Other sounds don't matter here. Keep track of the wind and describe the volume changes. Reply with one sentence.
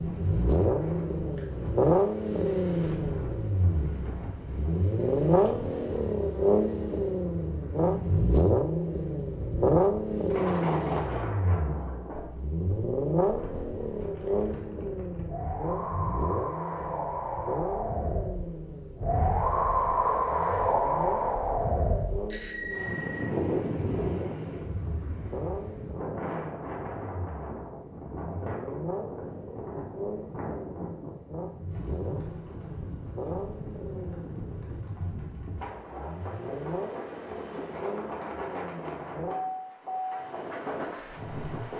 The volume of the wind goes up, then down.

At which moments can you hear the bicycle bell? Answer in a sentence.
The bicycle bell can be heard from 10.3 to 11.3 s and from 22.3 to 23.3 s.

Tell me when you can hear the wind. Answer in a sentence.
You can hear the wind from 0.0 to 41.7 s.